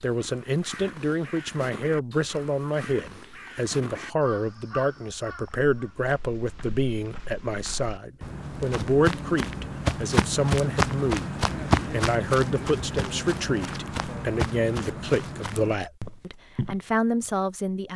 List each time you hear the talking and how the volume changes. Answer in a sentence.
The talking can be heard from 0.0 to 17.9 s, at a steady volume.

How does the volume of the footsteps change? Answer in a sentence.
The loudness of the footsteps goes up, then down.